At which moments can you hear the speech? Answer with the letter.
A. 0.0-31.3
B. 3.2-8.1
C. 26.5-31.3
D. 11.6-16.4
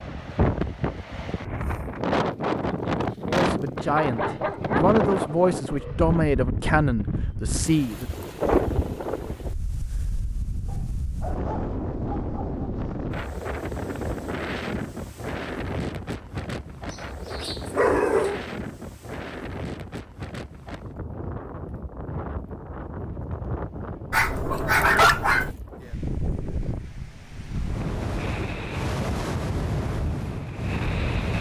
B.